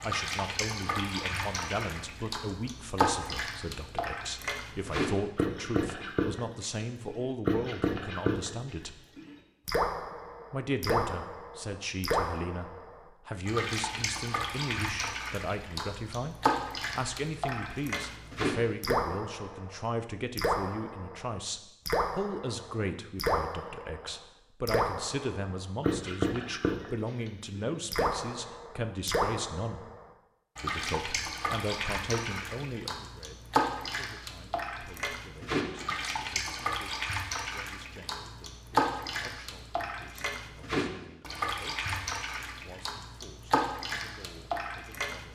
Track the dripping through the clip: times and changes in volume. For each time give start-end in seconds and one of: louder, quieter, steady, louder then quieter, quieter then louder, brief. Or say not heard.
0.0-45.2 steady.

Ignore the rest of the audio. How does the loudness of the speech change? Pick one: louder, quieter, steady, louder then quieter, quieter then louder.
quieter.